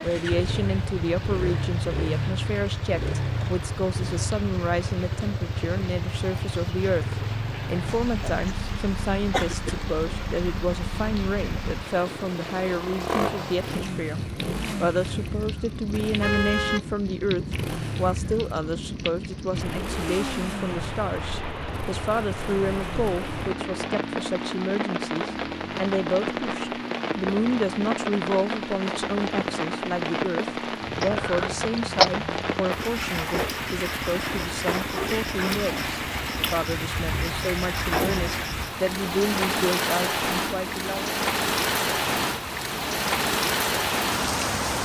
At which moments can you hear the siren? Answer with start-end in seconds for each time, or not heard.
not heard.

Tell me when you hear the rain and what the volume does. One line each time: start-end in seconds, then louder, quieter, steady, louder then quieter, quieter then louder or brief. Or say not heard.
0.0-44.8 louder.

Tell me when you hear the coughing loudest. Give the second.
32 s.